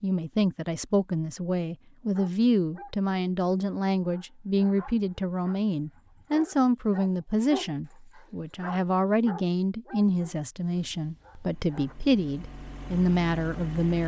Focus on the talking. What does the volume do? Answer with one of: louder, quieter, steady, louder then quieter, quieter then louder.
steady.